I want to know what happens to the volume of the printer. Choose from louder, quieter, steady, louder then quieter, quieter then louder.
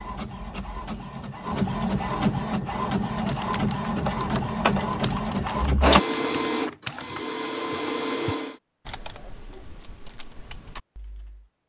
louder then quieter.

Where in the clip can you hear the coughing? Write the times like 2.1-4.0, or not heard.
not heard.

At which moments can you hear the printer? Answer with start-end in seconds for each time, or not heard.
0.0-8.6.